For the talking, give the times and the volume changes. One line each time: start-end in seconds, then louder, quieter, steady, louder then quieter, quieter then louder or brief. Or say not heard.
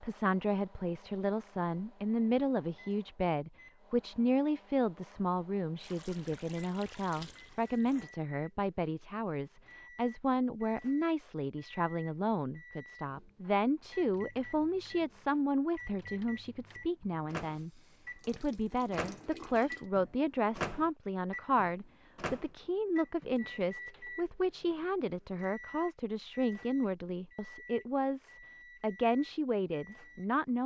0.0-30.6 steady.